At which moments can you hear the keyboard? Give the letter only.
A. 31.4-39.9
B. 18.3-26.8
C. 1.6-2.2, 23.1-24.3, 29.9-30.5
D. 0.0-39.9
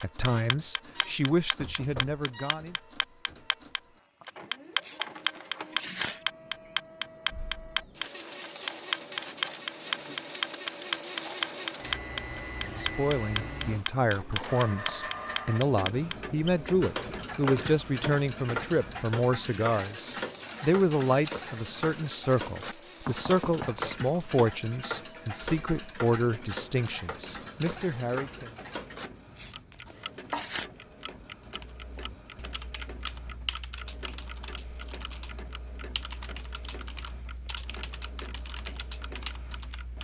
A.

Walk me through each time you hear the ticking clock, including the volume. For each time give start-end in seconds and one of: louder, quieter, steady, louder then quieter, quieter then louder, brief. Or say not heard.
0.0-39.9 quieter.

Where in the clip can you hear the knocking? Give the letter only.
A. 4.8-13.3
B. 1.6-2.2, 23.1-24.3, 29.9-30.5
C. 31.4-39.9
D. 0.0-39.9
B.